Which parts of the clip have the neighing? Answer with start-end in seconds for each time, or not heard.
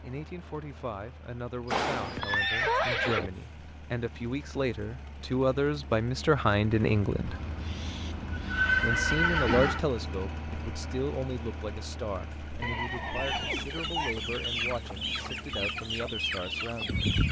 1.6-3.3, 7.2-9.8, 12.6-14.2.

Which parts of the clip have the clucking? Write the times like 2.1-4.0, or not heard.
13.1-17.2.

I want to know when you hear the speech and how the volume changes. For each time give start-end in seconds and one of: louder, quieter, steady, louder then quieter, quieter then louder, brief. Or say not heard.
0.0-7.3 louder
8.8-17.1 quieter.